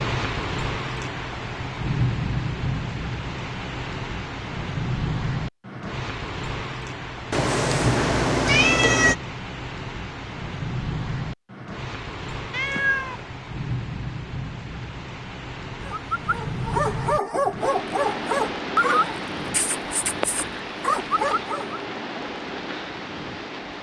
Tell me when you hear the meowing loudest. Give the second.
9 s.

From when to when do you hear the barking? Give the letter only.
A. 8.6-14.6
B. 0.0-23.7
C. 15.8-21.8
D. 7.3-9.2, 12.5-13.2
C.